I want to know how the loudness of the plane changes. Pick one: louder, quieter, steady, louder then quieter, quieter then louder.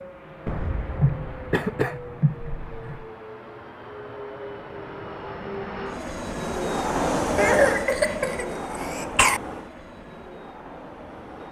louder then quieter.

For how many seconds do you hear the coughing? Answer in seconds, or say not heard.
5 s.